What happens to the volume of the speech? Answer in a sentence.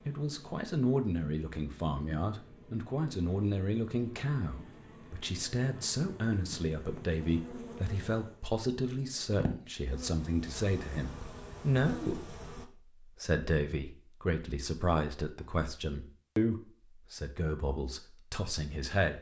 The volume of the speech stays about the same.